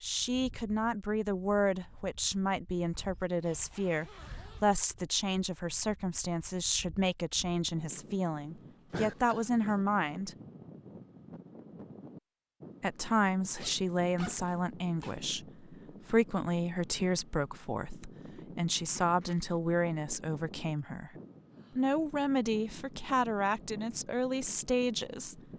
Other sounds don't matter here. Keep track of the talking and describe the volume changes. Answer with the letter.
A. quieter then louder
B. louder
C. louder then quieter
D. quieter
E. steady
E.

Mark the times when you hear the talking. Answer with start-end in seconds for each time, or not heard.
0.0-10.3, 12.8-21.1, 21.8-25.4.